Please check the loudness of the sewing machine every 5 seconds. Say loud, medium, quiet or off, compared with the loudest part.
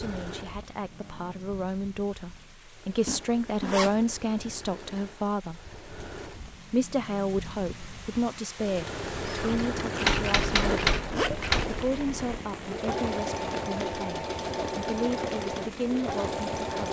quiet, medium, loud, loud.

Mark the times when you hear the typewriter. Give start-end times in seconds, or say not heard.
9.2-11.7.